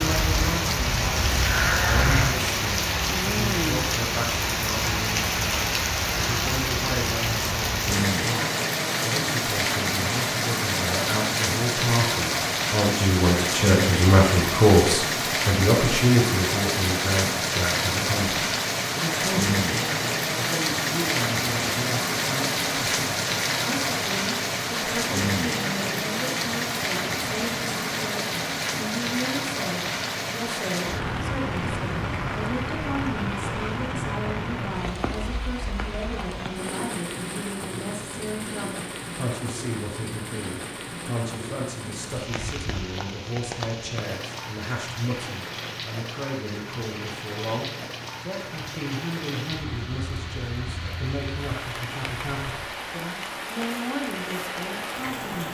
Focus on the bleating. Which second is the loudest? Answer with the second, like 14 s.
2 s.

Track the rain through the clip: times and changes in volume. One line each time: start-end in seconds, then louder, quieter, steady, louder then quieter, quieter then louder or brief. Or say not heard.
0.0-55.4 quieter.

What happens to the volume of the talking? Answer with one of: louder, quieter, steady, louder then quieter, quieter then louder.
louder then quieter.